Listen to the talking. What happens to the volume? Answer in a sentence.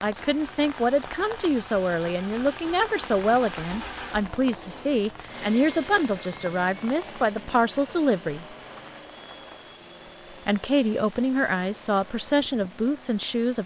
The loudness of the talking stays about the same.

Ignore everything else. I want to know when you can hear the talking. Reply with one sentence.
The talking can be heard from 0.0 to 8.6 s and from 10.4 to 13.6 s.